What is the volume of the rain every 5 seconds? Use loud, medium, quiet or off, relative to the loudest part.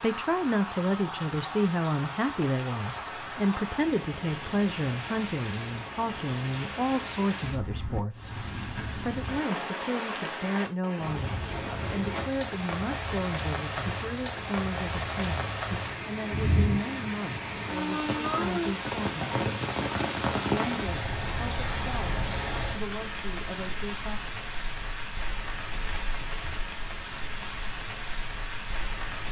medium, medium, loud, loud, loud, medium.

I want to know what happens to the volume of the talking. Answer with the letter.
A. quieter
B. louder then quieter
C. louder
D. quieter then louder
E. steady
A.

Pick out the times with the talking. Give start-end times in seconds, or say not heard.
0.0-19.4, 20.6-24.2.